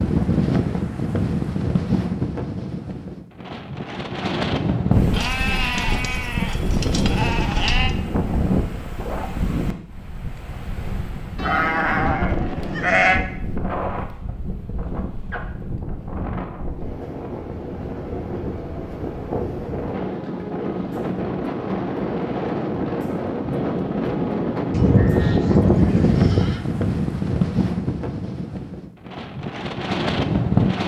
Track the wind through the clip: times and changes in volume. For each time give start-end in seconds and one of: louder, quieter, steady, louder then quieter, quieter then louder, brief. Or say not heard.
0.0-30.8 quieter then louder.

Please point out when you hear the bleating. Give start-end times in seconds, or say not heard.
5.1-7.9, 11.3-13.2, 24.7-26.6.